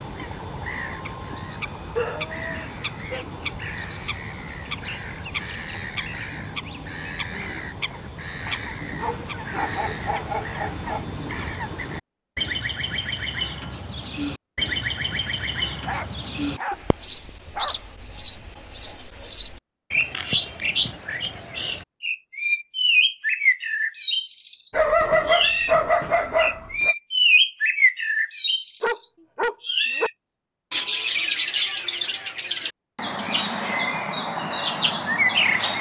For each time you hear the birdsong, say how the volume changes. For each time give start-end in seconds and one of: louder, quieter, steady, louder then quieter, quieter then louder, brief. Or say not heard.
0.0-35.7 louder.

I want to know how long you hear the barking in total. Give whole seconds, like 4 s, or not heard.
9 s.